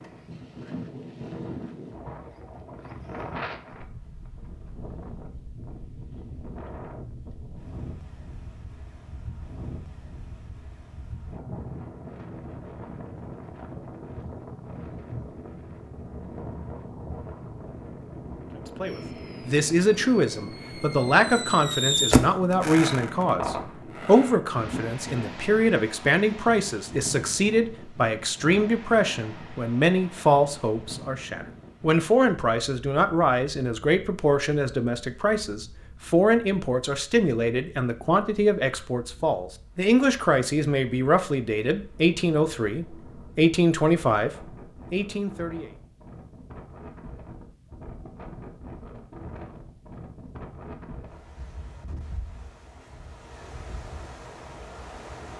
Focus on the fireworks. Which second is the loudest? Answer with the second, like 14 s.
22 s.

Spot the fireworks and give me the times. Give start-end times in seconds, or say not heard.
18.9-24.9.